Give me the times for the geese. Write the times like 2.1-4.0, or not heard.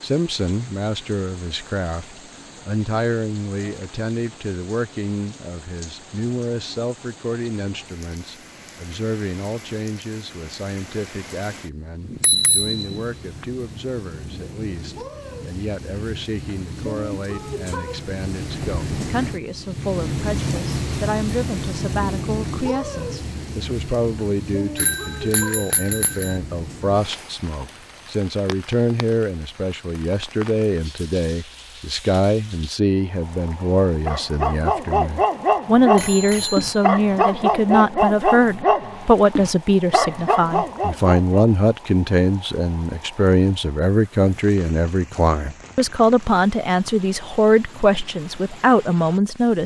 not heard.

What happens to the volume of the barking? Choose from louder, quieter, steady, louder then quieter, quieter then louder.
steady.